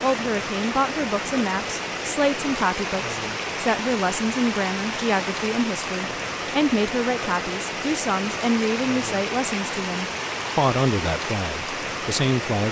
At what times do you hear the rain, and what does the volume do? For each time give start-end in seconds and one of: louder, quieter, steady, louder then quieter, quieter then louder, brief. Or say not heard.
0.0-12.6 steady.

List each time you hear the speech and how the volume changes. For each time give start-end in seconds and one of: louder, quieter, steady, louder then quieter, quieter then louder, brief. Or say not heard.
0.0-12.6 steady.